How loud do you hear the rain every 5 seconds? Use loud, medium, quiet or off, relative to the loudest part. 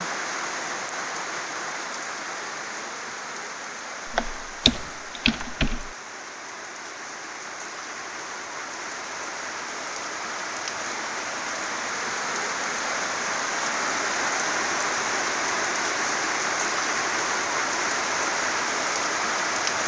medium, medium, loud, loud.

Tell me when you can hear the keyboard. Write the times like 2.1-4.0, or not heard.
4.0-5.9.